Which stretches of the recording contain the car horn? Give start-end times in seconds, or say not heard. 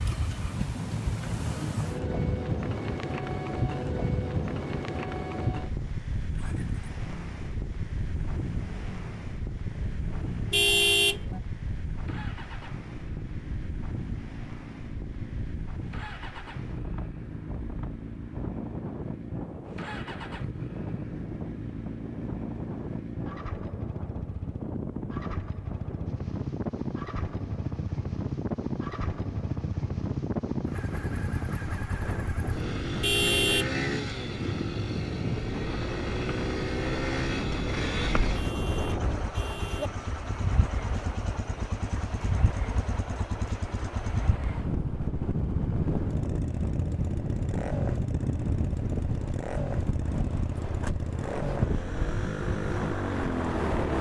10.5-11.4, 33.0-33.7, 38.3-39.9.